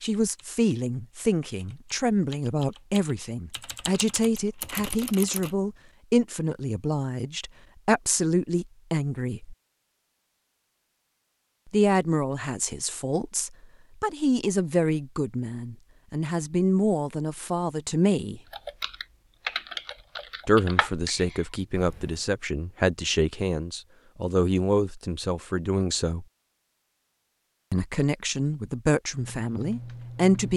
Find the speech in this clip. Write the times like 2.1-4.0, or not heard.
0.0-9.6, 11.7-18.4, 20.4-26.2, 27.7-30.5.